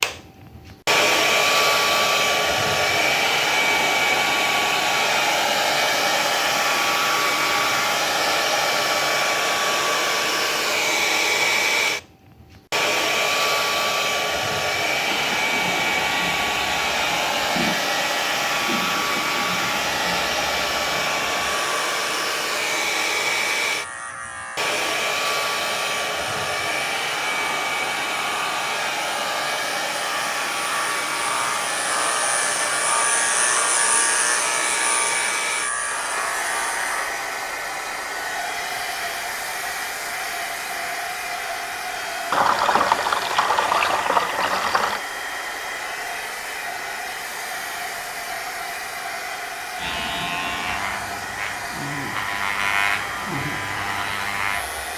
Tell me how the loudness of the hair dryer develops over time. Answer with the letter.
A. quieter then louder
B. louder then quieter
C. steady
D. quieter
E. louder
D.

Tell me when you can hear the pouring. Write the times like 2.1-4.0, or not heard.
42.3-45.0.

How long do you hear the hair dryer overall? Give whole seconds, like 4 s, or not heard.
55 s.